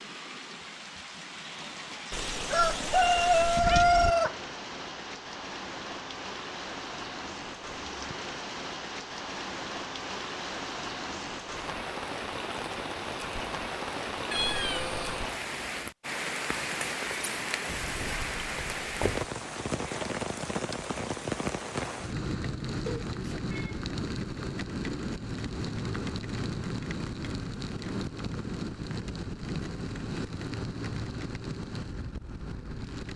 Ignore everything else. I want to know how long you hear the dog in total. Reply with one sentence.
The dog can't be heard in this clip.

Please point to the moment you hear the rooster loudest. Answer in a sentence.
The loudest moment of the rooster is at 4 seconds.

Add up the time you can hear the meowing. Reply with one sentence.
You can hear the meowing for 4 seconds altogether.